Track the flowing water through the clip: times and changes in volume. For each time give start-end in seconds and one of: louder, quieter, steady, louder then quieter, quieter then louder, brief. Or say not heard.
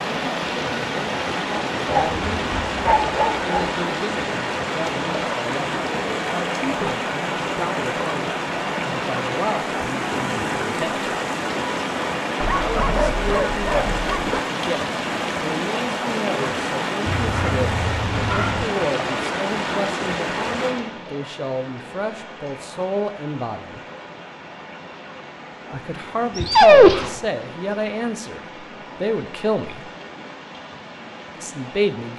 0.0-32.1 quieter.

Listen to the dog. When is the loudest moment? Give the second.
27 s.